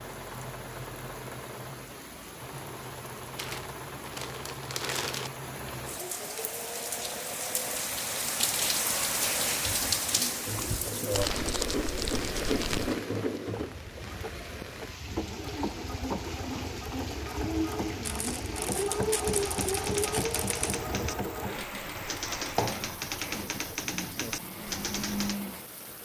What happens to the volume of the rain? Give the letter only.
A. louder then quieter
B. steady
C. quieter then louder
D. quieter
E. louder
A.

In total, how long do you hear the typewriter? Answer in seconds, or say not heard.
6 s.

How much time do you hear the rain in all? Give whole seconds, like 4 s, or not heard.
26 s.